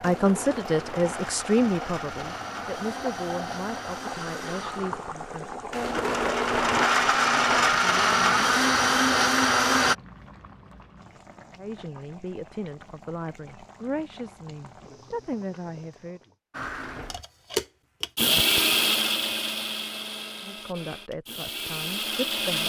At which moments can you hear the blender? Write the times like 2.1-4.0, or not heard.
0.0-9.9, 16.6-22.6.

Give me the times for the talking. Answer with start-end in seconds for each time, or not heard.
0.0-5.5, 11.6-16.2, 20.4-22.6.